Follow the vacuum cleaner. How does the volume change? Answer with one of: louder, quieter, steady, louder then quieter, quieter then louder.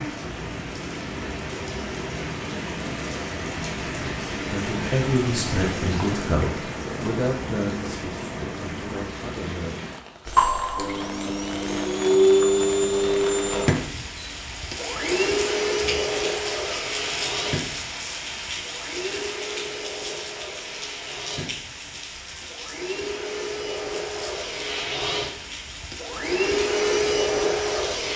quieter then louder.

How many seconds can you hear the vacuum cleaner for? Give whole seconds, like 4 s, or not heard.
18 s.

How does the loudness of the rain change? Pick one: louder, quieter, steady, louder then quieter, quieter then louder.
quieter.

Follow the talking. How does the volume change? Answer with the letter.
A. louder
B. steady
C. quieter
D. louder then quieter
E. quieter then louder
C.